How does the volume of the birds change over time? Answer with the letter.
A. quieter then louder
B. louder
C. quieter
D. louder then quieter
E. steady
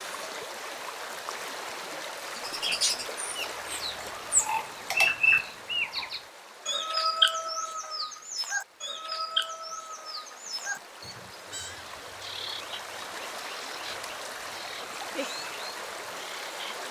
C.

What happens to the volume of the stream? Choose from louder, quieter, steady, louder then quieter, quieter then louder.
quieter then louder.